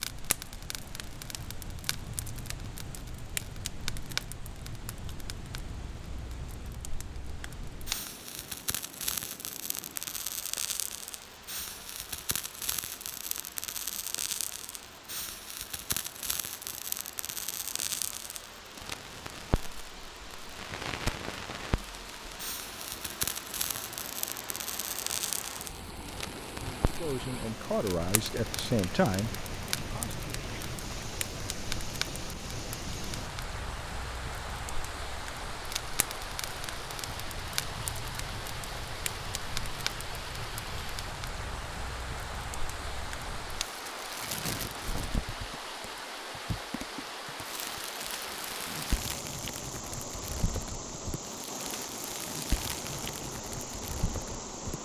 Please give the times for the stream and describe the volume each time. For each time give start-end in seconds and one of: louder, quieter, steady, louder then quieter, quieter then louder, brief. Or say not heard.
0.0-54.8 louder.